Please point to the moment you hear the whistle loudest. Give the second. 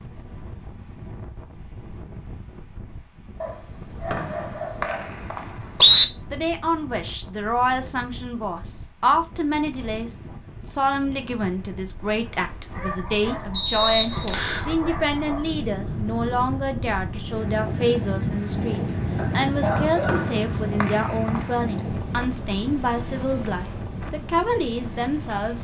6 s.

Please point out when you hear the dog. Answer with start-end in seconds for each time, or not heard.
3.4-5.2, 12.7-15.6, 19.1-20.8.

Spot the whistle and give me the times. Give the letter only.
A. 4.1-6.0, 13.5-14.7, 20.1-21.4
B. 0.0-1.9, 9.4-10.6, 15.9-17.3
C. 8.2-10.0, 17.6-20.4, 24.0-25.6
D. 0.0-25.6
A.